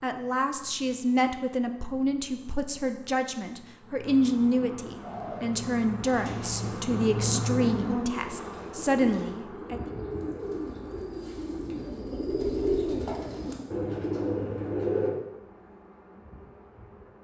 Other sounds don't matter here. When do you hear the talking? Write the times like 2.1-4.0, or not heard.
0.0-9.9.